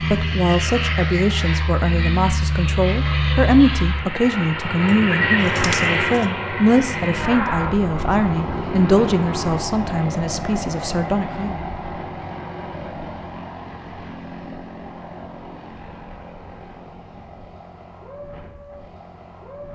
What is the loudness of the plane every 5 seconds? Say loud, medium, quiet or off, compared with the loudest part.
loud, loud, medium, quiet.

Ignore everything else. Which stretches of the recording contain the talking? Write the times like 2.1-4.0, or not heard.
0.1-11.6.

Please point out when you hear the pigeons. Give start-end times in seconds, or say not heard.
4.8-6.3.